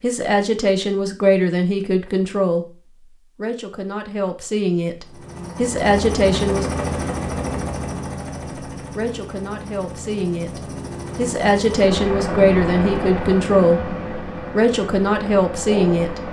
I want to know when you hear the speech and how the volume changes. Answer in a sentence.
You can hear the speech from 0.0 to 6.8 s, getting quieter then louder; and from 8.8 to 16.2 s, getting louder.